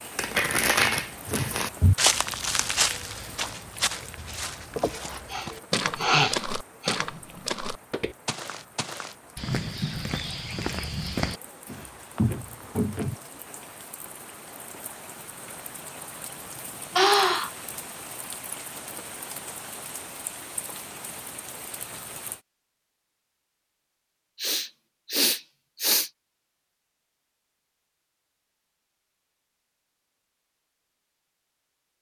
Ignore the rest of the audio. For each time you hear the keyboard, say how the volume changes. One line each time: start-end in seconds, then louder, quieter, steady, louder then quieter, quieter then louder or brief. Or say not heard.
not heard.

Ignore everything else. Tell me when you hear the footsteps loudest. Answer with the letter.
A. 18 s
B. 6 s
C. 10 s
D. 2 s
D.